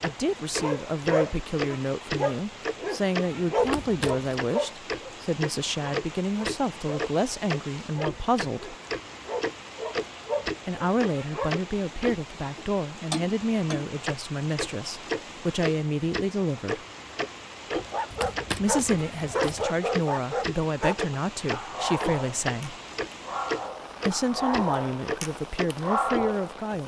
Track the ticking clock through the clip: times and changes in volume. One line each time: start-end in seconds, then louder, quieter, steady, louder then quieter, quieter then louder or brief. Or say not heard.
0.0-26.8 steady.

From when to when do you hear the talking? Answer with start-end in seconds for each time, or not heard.
0.0-8.8, 10.7-16.8, 18.6-22.8, 24.1-26.8.